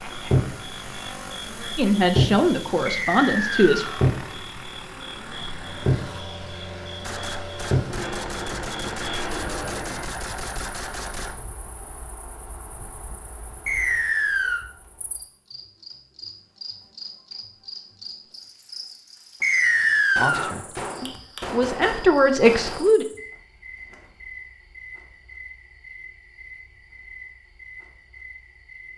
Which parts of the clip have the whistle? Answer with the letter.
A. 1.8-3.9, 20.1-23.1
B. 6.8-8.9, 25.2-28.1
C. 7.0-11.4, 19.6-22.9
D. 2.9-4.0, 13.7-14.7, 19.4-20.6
D.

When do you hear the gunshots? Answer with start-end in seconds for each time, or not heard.
7.0-11.4, 19.6-22.9.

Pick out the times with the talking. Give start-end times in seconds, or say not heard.
1.8-3.9, 20.1-23.1.